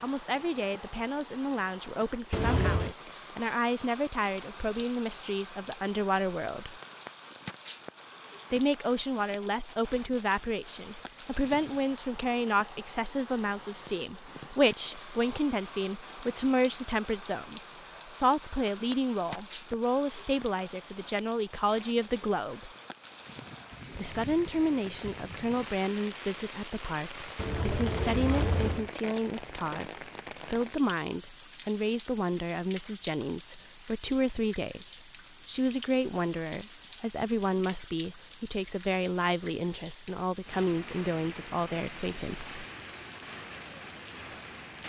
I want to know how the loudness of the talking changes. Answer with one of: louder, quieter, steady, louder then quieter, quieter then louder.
steady.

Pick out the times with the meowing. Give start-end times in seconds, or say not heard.
2.3-3.0, 27.4-28.9.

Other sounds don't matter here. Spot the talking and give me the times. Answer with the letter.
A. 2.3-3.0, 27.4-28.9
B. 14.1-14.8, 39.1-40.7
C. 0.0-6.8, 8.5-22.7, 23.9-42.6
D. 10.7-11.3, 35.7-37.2
C.